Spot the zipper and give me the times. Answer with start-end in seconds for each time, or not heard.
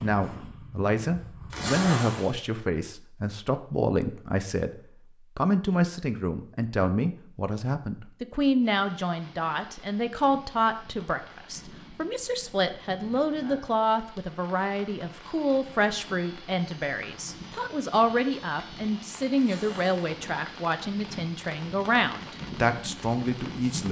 1.5-2.4, 19.4-19.9.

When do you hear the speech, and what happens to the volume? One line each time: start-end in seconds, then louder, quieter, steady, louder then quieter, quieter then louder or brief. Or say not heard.
0.0-23.8 steady.